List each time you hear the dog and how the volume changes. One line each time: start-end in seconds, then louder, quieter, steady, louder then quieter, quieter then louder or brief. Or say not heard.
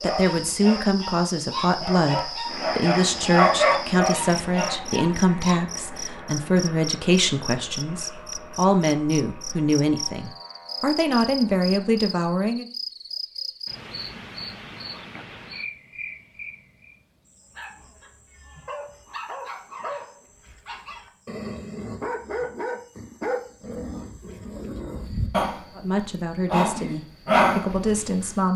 0.0-5.7 louder then quieter
17.4-28.5 louder.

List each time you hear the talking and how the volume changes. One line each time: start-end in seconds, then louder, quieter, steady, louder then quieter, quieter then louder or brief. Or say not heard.
0.0-12.7 steady
25.8-28.5 brief.